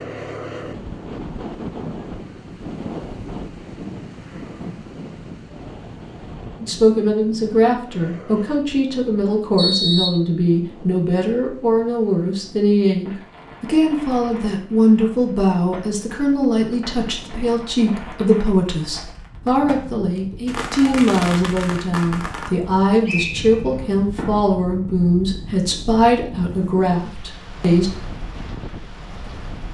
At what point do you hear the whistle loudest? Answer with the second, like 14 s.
10 s.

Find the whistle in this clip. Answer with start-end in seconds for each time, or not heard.
9.6-10.2, 23.1-23.8.